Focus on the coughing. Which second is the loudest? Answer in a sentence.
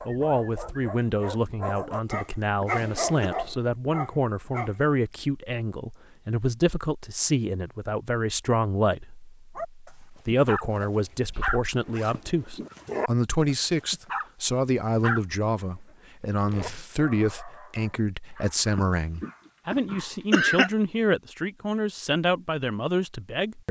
The volume of the coughing peaks at 20 seconds.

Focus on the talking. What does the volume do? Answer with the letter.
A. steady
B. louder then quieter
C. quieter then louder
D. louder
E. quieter
A.